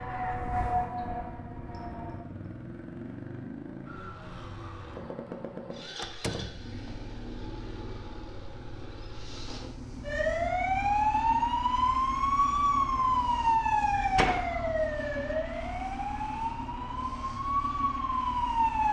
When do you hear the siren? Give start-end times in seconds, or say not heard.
0.0-2.2, 10.0-18.8.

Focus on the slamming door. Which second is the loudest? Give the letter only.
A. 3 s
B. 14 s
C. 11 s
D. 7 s
B.